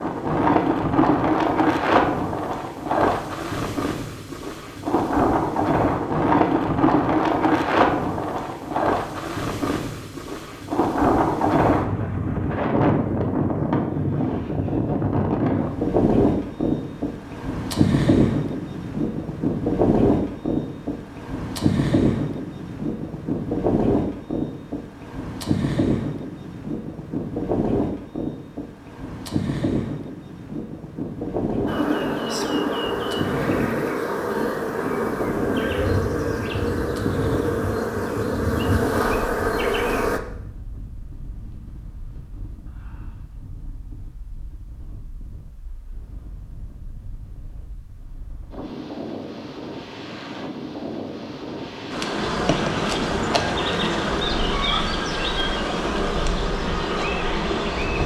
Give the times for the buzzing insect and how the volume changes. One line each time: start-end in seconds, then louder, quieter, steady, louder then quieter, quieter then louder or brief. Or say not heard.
31.6-40.2 steady
51.9-58.0 steady.